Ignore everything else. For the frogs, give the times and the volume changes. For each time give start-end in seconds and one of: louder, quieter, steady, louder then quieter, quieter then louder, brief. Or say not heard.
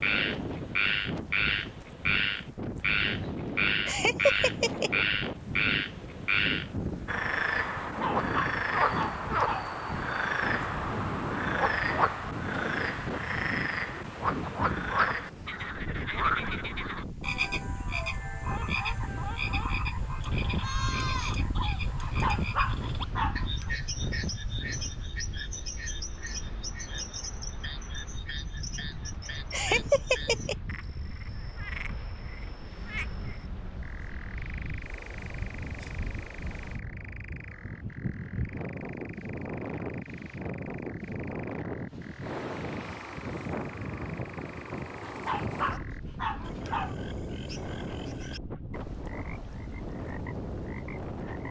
0.0-51.4 quieter.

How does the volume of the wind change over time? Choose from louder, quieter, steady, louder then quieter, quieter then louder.
steady.